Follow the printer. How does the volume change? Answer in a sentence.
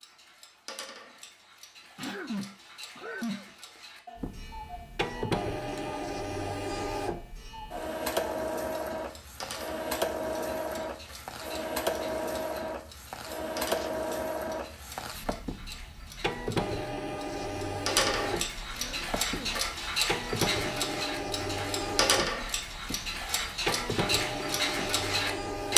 The volume of the printer stays about the same.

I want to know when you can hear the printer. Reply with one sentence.
The printer can be heard from 4.2 to 25.7 s.